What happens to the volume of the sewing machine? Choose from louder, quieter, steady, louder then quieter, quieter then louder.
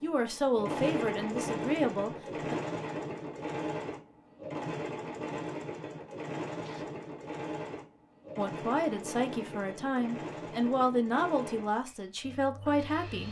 quieter.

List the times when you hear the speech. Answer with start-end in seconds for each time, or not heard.
0.0-2.5, 8.3-13.2.